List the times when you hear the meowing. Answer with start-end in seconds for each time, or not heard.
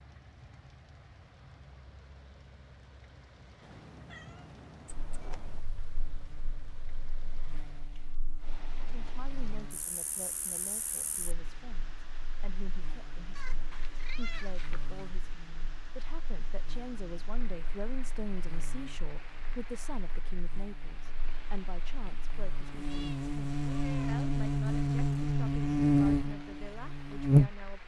3.6-5.6, 13.3-14.8, 22.8-24.2.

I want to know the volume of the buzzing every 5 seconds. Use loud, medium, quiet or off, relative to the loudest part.
off, quiet, quiet, quiet, medium, loud.